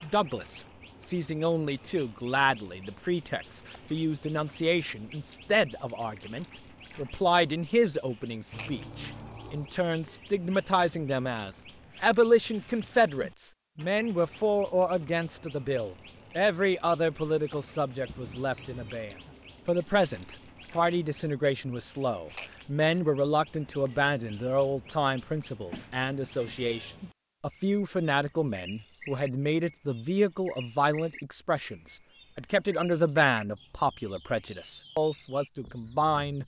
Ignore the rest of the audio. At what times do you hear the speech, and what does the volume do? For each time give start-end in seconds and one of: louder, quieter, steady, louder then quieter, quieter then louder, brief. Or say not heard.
0.0-36.4 steady.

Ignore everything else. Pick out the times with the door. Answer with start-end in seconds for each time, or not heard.
not heard.